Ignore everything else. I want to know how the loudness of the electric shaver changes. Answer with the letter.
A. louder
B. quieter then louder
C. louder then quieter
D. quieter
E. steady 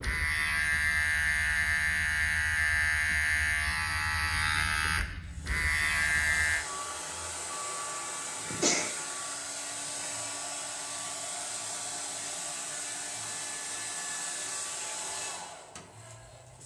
E.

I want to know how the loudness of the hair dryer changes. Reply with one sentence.
The volume of the hair dryer stays about the same.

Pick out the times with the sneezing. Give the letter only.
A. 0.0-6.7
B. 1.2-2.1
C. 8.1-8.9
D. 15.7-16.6
C.